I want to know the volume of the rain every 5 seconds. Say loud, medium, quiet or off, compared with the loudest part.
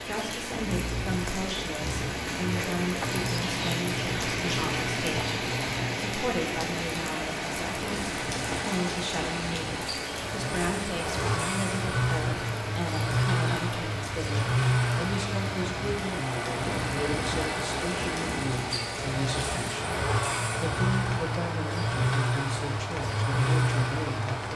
loud, loud, medium, medium, medium.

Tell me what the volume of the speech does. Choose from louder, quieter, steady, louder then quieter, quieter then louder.
steady.